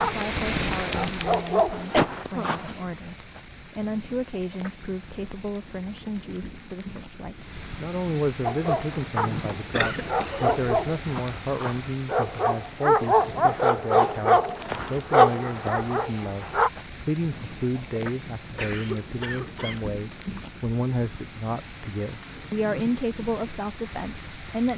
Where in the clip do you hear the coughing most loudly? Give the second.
2 s.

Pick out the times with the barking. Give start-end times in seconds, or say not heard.
0.0-2.8, 8.4-16.7.